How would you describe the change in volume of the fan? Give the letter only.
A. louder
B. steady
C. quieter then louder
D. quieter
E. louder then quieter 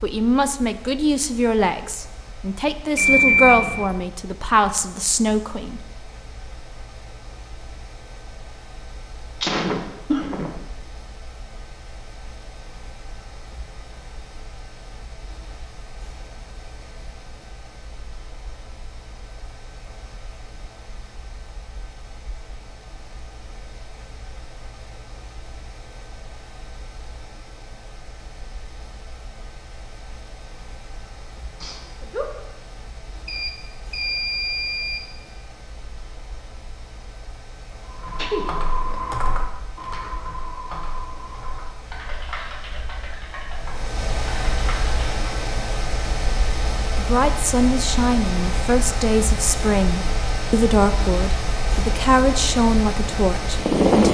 A.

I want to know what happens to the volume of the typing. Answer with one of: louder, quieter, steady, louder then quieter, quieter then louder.
quieter.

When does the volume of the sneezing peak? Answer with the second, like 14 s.
10 s.